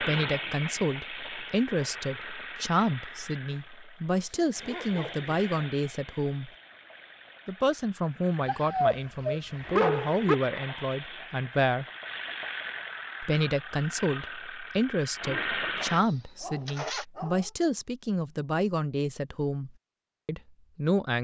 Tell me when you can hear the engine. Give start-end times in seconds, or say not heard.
0.0-17.1.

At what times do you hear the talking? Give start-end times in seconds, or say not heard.
0.0-6.5, 7.5-11.8, 13.2-21.2.